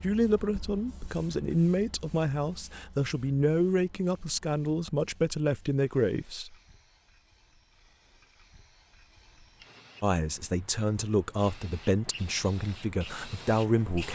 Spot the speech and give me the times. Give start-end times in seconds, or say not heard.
0.0-6.5, 10.0-14.1.